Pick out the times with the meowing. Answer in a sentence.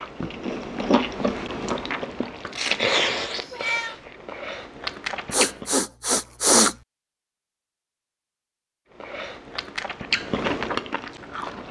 You can hear the meowing from 3.4 to 4.0 s.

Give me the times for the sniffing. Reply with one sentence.
The sniffing can be heard from 5.3 to 6.8 s.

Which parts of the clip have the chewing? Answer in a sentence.
You can hear the chewing from 0.0 to 5.8 s and from 8.9 to 11.6 s.